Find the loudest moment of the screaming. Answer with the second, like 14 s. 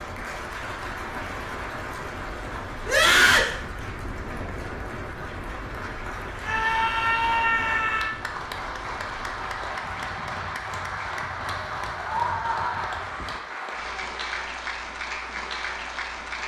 3 s.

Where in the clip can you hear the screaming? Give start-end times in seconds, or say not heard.
2.9-3.5, 6.4-8.2, 11.9-13.0.